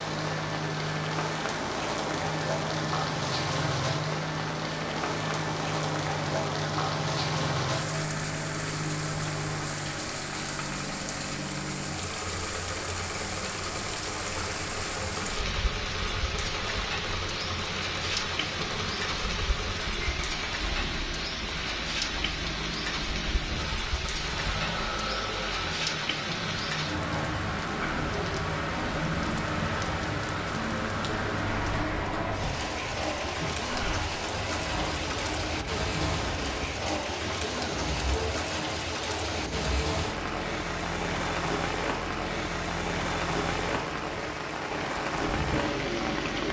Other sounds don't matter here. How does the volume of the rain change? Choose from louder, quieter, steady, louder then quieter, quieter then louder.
steady.